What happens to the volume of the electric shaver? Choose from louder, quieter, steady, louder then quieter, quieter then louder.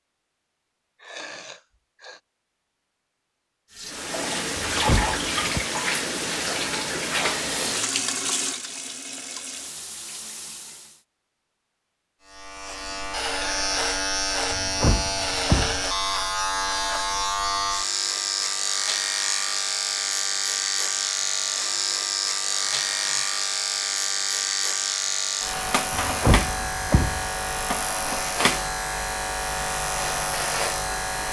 steady.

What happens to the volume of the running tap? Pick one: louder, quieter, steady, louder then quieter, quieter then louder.
quieter.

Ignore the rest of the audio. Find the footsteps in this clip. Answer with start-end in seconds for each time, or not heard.
not heard.